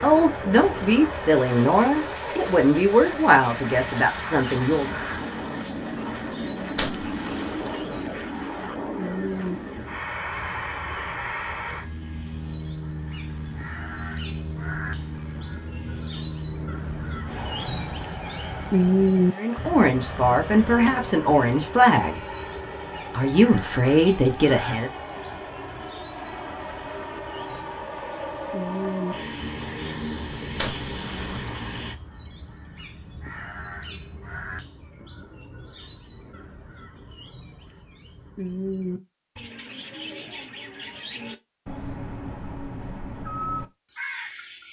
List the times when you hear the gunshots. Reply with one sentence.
The gunshots can be heard from 6.8 to 8.1 s and from 30.6 to 31.8 s.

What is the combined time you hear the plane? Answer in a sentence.
The plane can be heard for 32 seconds in total.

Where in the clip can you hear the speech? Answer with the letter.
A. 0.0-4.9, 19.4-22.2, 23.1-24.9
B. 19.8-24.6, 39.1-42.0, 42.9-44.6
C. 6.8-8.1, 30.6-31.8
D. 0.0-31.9
A.